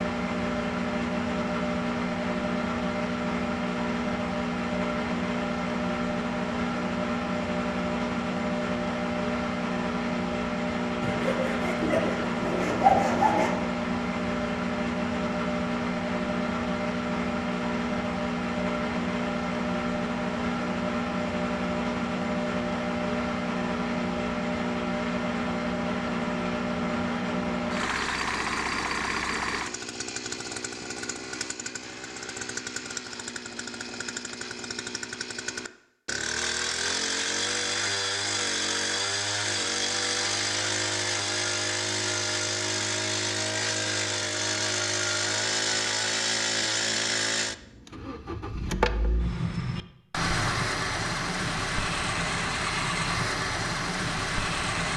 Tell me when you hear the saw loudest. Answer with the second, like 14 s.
13 s.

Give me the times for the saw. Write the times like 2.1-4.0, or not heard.
11.0-13.5.